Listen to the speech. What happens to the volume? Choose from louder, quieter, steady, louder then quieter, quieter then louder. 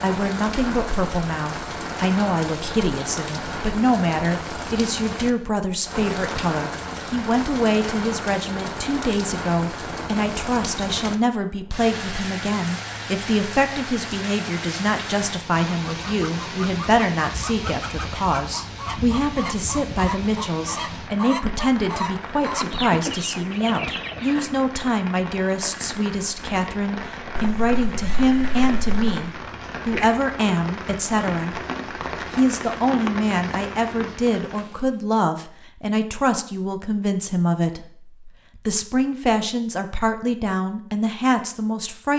steady.